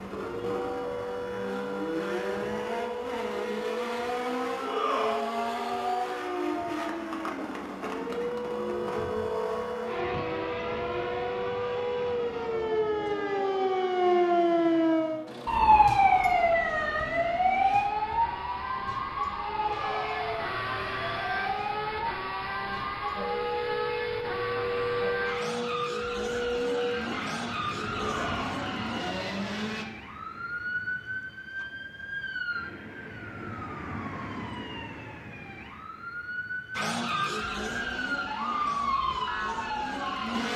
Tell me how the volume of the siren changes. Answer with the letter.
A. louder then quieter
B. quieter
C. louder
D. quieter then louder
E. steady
A.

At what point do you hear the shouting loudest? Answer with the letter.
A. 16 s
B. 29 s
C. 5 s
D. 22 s
C.